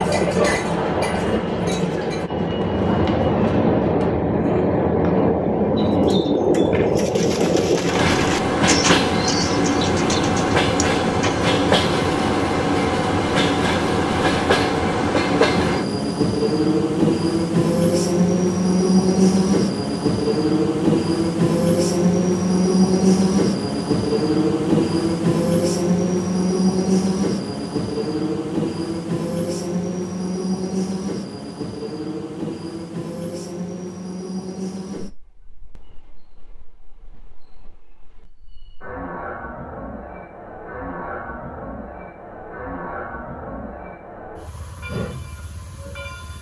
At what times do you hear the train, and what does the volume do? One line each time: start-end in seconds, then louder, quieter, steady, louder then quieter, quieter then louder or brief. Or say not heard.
0.0-46.3 quieter.